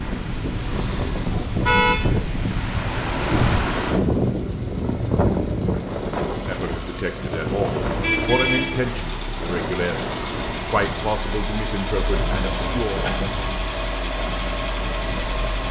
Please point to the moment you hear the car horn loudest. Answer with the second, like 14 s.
2 s.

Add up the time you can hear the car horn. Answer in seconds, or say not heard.
2 s.